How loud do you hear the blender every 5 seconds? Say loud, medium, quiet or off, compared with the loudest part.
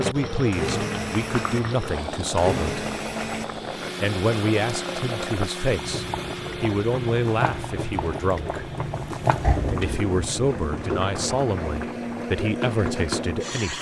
loud, medium, loud.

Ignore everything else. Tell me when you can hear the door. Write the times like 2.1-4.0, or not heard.
9.4-10.1.